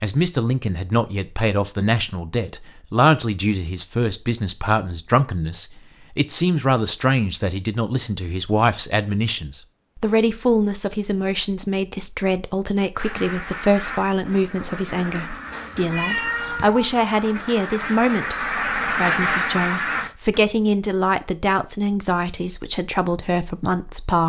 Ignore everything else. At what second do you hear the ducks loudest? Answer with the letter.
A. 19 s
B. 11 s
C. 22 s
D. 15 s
A.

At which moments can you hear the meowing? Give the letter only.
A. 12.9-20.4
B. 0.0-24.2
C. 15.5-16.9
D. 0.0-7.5
C.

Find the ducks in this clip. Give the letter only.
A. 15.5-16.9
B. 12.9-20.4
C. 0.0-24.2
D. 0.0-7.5
B.